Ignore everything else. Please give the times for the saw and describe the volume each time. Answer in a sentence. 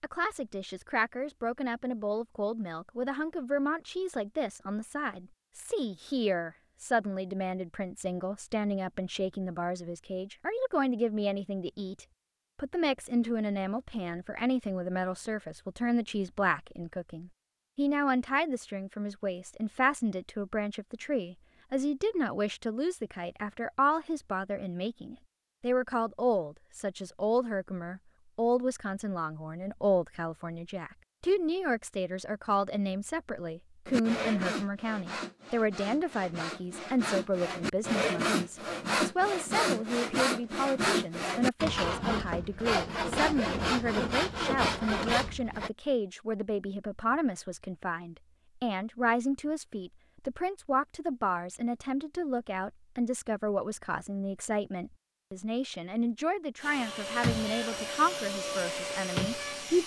You can hear the saw from 33.9 to 45.7 s, getting louder.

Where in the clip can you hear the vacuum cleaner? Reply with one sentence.
You can hear the vacuum cleaner from 56.6 to 59.8 s.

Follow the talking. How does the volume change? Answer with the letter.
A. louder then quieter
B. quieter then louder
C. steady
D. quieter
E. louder
C.